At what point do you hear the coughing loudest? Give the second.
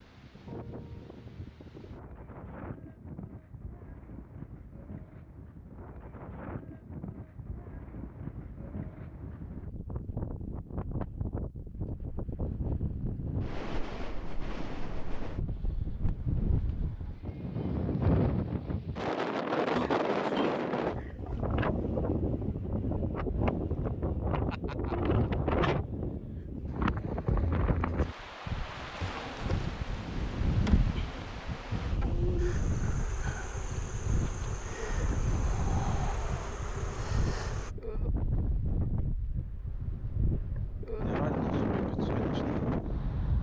20 s.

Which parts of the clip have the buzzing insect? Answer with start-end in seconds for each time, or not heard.
29.0-37.8.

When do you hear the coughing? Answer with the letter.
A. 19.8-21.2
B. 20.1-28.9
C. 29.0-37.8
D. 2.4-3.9
A.